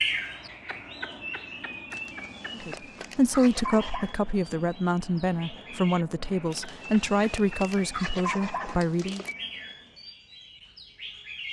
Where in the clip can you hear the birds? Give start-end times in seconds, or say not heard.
0.0-11.4.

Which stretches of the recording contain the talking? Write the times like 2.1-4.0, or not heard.
2.5-9.2.